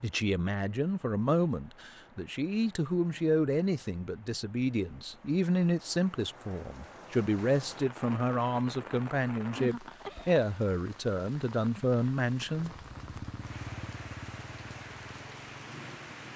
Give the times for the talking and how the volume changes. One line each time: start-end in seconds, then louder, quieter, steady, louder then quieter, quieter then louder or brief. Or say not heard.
0.0-12.7 steady.